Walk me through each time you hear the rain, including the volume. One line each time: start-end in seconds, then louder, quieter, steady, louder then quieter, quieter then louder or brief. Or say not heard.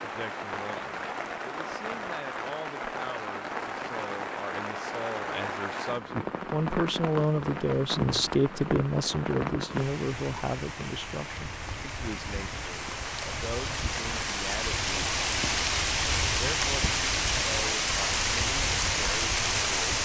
0.0-20.0 louder.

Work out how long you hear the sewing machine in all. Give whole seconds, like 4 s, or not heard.
not heard.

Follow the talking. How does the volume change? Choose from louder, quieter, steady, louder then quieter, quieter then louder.
louder then quieter.